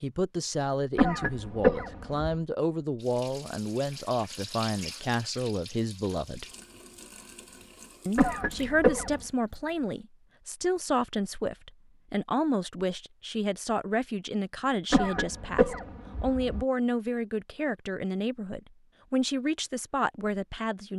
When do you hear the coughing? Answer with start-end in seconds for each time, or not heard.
0.9-2.4, 8.2-9.2, 14.9-16.6.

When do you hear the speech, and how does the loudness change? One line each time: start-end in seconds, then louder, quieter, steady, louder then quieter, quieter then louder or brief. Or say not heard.
0.0-6.5 steady
8.1-20.9 steady.